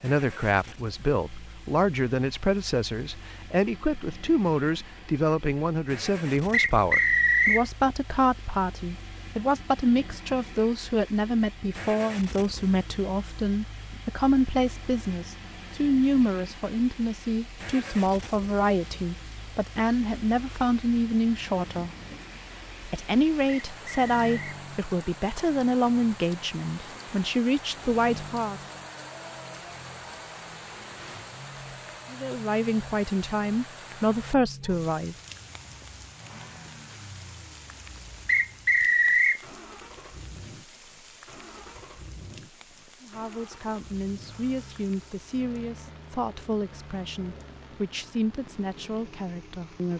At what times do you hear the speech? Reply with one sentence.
You can hear the speech from 0.0 to 21.9 s, from 22.9 to 28.6 s, from 32.1 to 35.1 s and from 43.0 to 49.9 s.